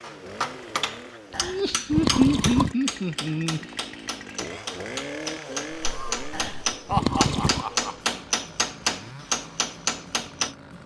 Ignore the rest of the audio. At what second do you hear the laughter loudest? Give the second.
2 s.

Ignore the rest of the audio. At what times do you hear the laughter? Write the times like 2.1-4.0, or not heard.
1.4-3.6, 5.8-8.0.